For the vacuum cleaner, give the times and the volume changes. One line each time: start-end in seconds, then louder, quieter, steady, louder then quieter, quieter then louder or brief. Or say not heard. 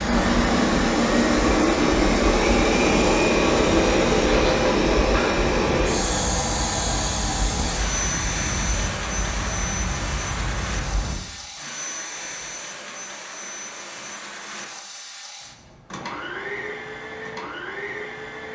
0.0-18.4 quieter.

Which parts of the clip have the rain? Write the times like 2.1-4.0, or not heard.
0.0-11.2.